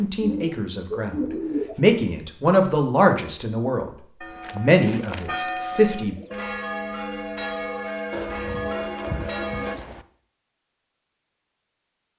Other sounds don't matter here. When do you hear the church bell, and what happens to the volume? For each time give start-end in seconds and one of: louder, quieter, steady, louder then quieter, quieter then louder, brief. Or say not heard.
4.2-9.8 steady.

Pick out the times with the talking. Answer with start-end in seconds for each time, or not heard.
0.0-3.9, 4.5-6.2.